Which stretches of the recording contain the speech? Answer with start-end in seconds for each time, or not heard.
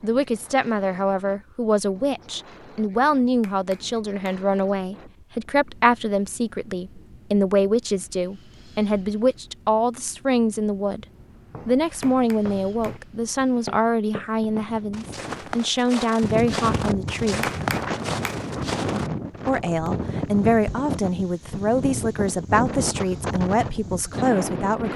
0.0-11.1, 11.7-17.5, 19.4-24.9.